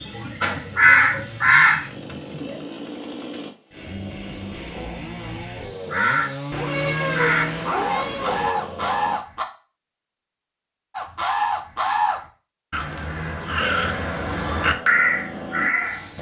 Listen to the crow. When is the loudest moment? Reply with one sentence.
The volume of the crow peaks at 1 second.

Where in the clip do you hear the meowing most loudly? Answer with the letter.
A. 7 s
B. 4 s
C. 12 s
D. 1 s
A.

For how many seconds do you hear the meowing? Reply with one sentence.
The meowing can be heard for 2 seconds in total.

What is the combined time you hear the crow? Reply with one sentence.
The crow can be heard for 11 seconds in total.